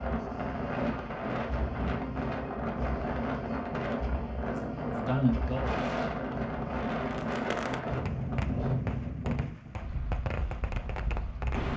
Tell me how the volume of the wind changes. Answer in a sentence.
The volume of the wind goes down.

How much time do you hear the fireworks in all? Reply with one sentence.
You can hear the fireworks for 5 seconds altogether.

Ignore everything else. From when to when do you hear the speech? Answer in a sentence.
The speech can be heard from 4.5 to 5.8 s.